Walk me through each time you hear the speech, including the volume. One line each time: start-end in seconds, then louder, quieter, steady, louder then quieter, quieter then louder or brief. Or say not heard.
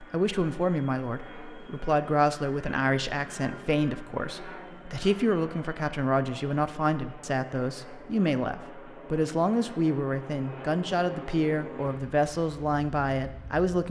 0.0-13.8 steady.